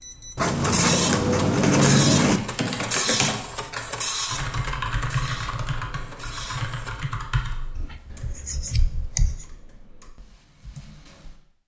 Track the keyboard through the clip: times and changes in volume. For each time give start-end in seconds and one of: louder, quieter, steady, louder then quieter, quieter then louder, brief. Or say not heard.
0.8-11.4 quieter.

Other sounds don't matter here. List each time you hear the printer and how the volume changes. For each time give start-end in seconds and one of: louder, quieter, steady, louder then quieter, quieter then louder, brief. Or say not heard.
0.0-7.0 quieter.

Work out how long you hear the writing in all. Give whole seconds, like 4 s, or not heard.
4 s.